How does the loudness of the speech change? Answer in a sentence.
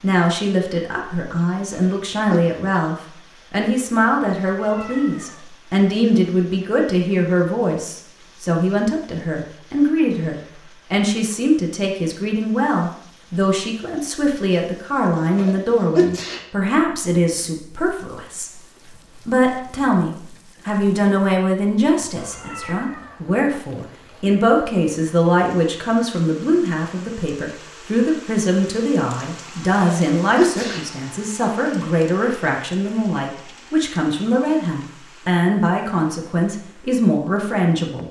The loudness of the speech stays about the same.